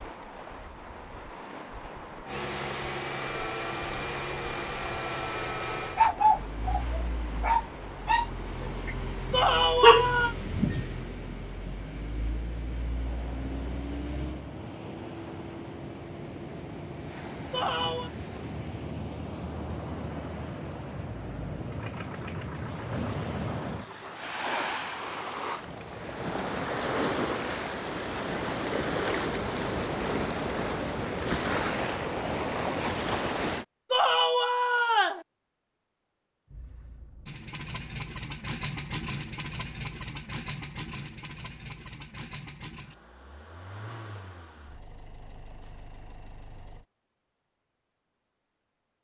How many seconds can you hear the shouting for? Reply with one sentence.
You can hear the shouting for 3 seconds altogether.